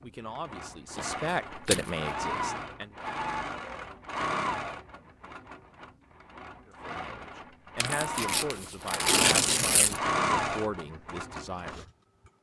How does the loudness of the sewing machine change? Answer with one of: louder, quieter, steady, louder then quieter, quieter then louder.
quieter then louder.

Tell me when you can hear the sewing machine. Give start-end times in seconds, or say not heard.
0.2-11.8.